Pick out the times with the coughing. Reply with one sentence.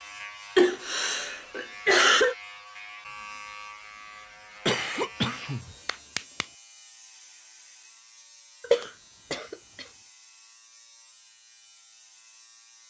The coughing can be heard from 0.6 to 2.4 s, from 4.7 to 6.5 s and from 8.6 to 9.8 s.